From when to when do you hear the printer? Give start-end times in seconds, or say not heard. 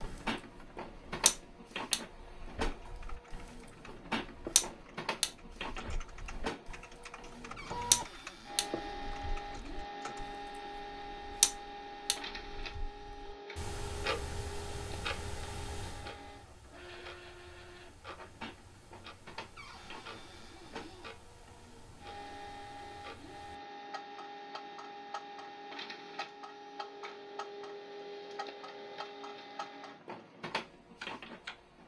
0.0-31.8.